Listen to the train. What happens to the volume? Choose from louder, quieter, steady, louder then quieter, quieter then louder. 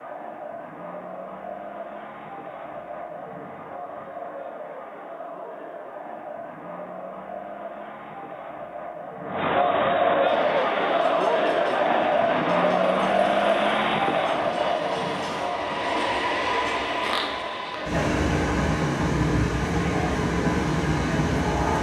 louder.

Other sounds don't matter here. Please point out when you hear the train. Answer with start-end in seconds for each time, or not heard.
10.2-21.7.